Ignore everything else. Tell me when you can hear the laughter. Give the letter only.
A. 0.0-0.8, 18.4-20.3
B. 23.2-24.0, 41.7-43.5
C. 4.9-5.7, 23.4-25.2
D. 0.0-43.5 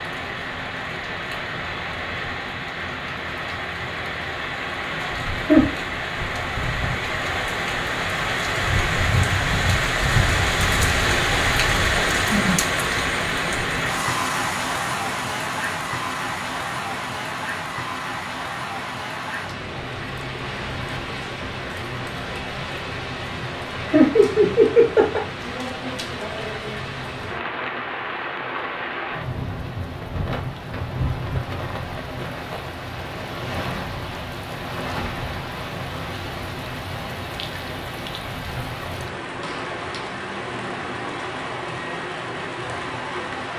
C.